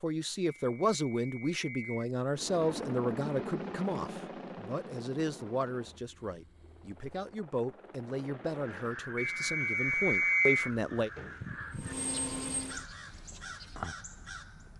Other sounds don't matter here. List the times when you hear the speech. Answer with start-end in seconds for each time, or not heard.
0.0-11.1.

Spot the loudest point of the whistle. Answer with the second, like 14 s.
10 s.